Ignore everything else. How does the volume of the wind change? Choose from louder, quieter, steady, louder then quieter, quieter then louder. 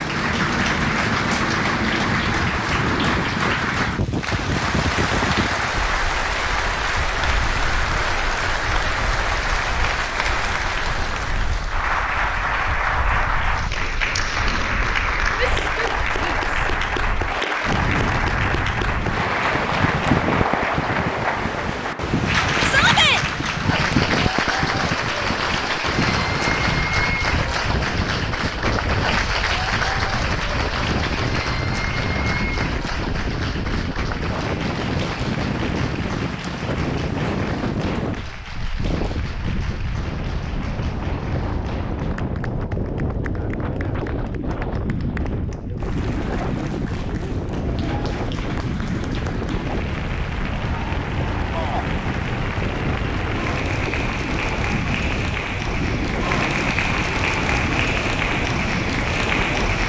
steady.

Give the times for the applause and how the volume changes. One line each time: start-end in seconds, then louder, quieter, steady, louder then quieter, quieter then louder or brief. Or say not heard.
0.0-59.8 quieter then louder.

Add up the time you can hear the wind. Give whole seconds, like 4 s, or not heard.
60 s.